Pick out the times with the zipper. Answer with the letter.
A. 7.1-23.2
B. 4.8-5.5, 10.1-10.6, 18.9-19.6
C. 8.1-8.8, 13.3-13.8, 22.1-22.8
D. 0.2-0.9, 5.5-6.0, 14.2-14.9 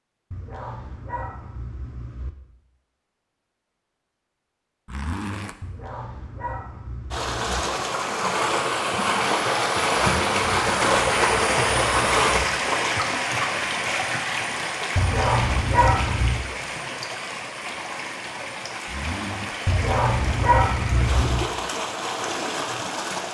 B.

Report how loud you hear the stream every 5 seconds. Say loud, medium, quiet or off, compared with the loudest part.
off, loud, loud, medium, medium.